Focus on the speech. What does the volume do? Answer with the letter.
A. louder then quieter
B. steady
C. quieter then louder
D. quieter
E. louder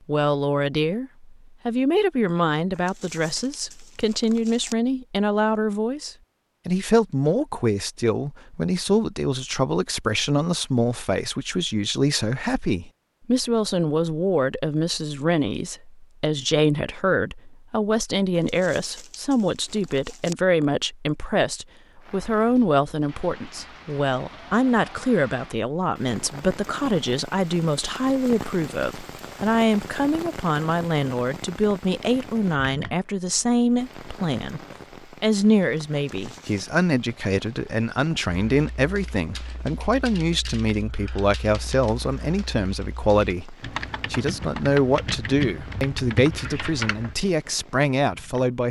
B.